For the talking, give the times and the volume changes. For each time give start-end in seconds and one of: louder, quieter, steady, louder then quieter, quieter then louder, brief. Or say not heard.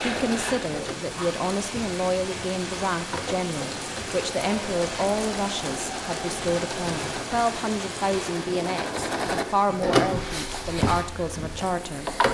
0.0-12.2 steady.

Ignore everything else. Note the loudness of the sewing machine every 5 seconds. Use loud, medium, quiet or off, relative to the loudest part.
medium, loud, loud.